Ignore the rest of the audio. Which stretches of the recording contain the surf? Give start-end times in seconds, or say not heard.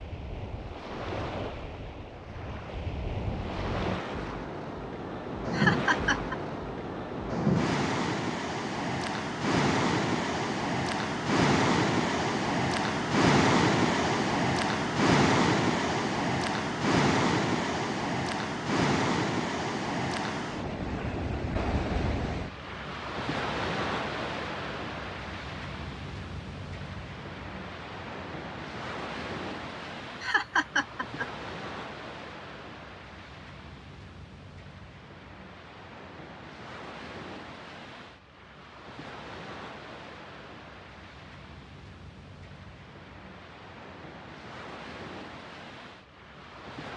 0.0-46.9.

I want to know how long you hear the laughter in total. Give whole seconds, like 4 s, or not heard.
2 s.